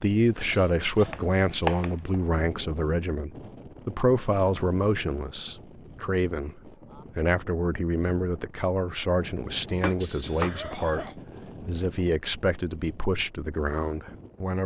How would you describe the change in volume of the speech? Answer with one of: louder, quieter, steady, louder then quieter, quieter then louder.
steady.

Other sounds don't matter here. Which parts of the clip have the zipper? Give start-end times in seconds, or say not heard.
not heard.